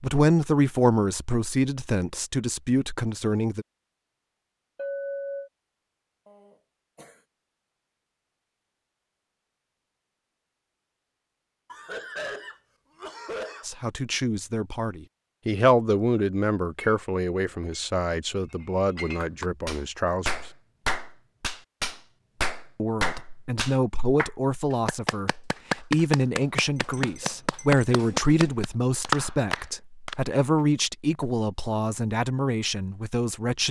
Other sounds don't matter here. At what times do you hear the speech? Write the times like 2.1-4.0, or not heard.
0.0-3.6, 13.7-20.3, 22.8-33.6.